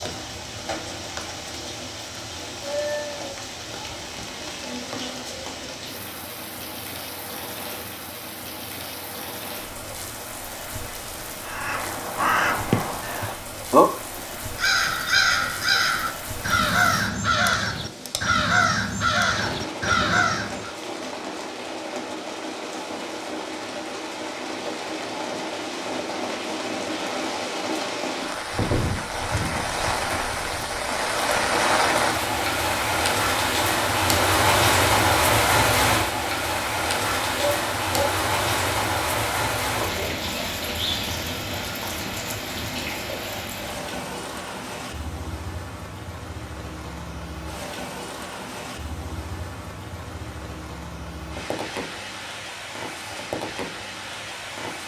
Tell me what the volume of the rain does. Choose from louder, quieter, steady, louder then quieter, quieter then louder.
louder then quieter.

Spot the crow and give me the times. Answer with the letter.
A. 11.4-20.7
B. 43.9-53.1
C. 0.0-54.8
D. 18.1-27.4
A.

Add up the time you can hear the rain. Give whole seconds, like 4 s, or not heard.
55 s.